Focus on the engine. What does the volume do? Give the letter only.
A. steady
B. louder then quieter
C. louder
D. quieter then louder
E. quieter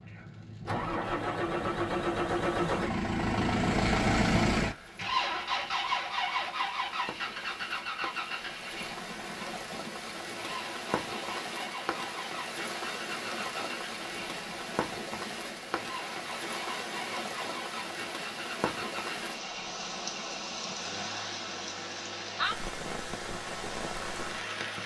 E.